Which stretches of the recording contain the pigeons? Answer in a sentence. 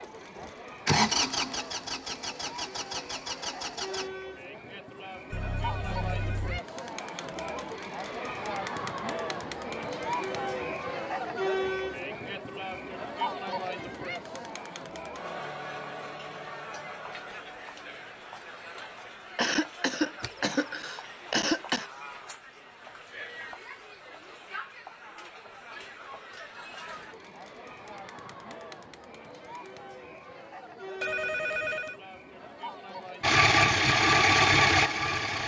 The pigeons can't be heard in this clip.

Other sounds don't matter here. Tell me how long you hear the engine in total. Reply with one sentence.
The engine can be heard for 6 seconds in total.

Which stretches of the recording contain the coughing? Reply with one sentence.
The coughing can be heard from 19.4 to 21.9 s.